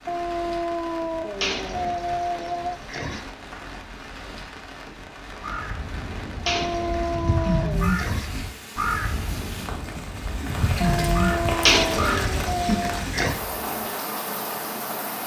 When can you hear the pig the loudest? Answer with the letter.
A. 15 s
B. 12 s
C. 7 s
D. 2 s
B.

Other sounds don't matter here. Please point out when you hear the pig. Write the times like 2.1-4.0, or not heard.
1.4-3.2, 6.5-8.3, 11.7-13.3.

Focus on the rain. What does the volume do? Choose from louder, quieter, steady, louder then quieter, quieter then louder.
louder.